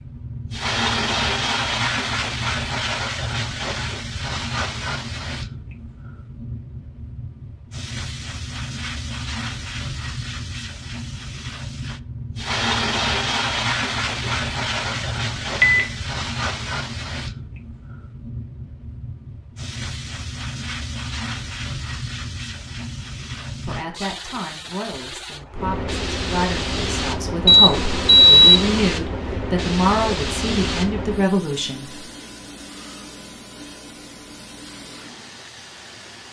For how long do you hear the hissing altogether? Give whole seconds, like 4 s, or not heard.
36 s.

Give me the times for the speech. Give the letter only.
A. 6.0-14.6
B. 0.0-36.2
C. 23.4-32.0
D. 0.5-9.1
C.